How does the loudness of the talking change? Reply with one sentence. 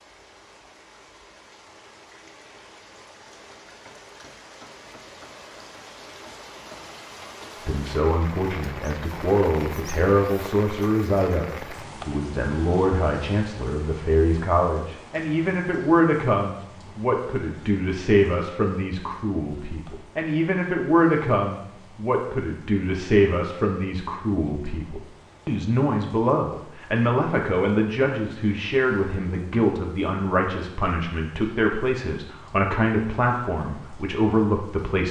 The loudness of the talking stays about the same.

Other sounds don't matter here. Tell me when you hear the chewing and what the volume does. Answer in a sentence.
You can't hear the chewing here.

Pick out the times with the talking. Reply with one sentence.
You can hear the talking from 7.7 to 35.0 s.